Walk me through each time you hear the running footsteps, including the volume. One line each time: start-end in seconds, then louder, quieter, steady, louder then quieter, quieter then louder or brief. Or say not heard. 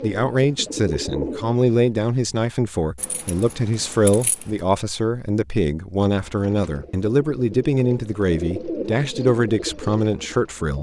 not heard.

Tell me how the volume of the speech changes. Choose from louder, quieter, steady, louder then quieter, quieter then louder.
steady.